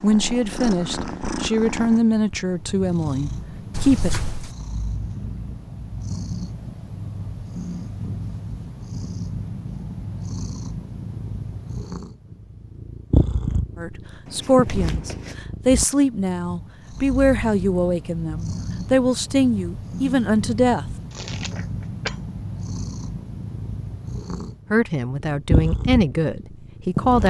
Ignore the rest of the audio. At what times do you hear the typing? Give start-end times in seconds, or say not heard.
not heard.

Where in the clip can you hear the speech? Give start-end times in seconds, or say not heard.
0.0-4.3, 13.8-20.9, 24.7-27.2.